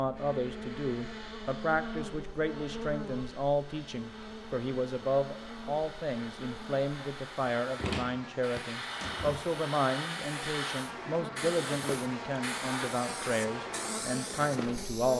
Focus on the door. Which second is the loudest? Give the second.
8 s.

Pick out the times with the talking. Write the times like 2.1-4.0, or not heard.
0.0-15.1.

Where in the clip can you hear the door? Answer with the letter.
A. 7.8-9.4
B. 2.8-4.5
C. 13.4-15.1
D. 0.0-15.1
A.